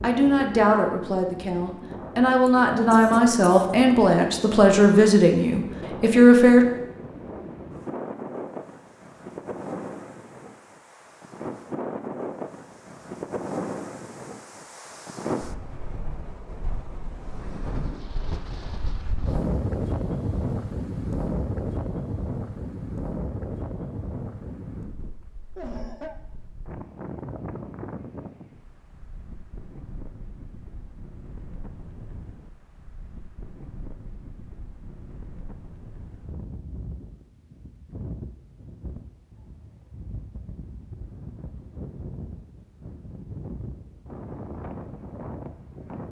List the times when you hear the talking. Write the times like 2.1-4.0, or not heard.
0.0-6.7.